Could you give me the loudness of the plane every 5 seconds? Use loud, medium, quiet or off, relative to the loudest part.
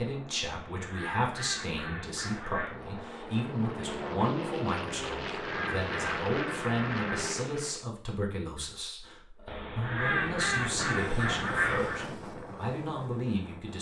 loud, loud, medium.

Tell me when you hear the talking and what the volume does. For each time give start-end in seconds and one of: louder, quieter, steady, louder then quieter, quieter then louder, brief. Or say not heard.
0.0-13.7 steady.